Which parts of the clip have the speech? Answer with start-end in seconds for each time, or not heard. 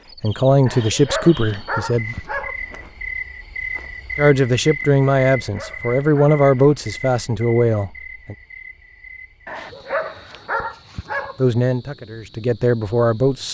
0.2-2.2, 4.2-8.3, 11.3-13.4.